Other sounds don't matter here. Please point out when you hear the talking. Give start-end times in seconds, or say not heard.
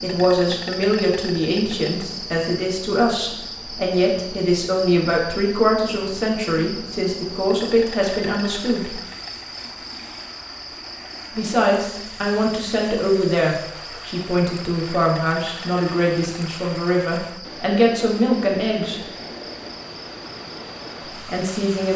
0.0-9.0, 11.3-19.0, 21.2-21.9.